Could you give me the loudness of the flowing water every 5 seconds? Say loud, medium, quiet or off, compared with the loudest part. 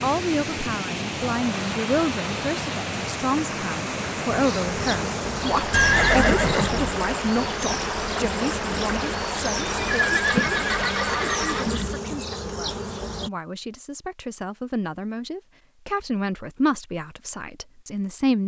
loud, loud, loud, off.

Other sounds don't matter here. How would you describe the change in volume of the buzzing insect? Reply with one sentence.
The volume of the buzzing insect stays about the same.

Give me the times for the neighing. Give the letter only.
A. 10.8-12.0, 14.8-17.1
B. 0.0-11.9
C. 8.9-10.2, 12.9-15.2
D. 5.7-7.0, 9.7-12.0
D.